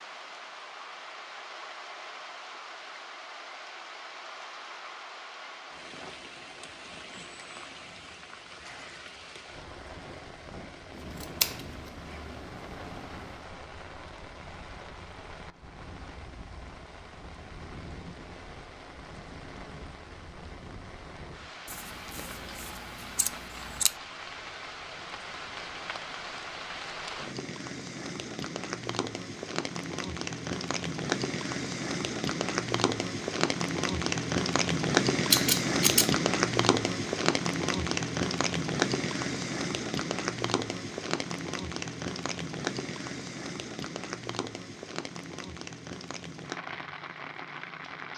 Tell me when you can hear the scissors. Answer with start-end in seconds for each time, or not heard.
10.9-13.4, 21.6-23.9, 35.3-36.1.